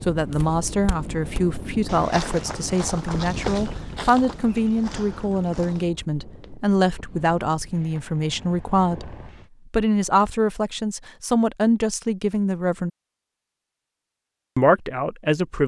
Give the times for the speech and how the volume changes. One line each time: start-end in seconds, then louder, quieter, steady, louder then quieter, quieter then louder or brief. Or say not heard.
0.0-12.9 steady
14.6-15.6 brief.